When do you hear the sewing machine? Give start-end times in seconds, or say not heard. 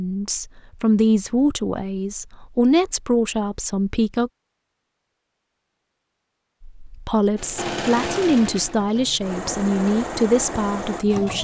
7.3-11.4.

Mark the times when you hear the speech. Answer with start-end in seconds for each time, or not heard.
0.0-4.3, 6.8-11.4.